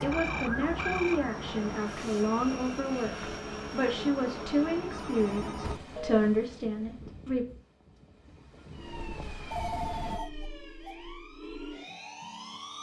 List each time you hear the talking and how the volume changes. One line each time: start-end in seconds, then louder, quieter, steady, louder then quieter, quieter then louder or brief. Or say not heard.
0.0-7.5 steady.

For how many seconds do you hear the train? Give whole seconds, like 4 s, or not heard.
10 s.